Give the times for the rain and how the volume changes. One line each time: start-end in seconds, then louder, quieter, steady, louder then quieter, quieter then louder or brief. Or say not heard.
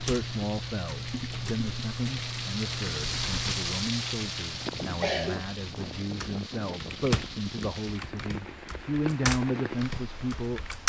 0.0-10.8 louder then quieter.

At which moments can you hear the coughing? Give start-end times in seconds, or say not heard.
5.0-5.5.